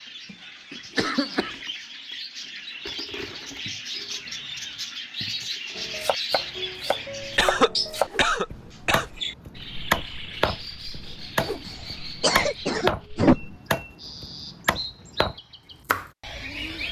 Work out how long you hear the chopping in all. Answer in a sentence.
The chopping can be heard for 10 seconds in total.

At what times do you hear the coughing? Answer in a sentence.
You can hear the coughing from 0.3 to 1.5 s, from 7.2 to 9.2 s and from 11.7 to 13.6 s.